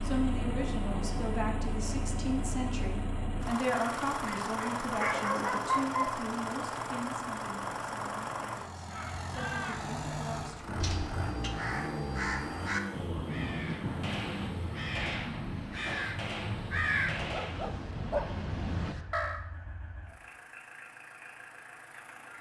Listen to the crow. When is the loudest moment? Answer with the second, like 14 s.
17 s.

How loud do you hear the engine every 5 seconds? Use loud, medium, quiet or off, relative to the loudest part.
loud, loud, loud, medium, quiet.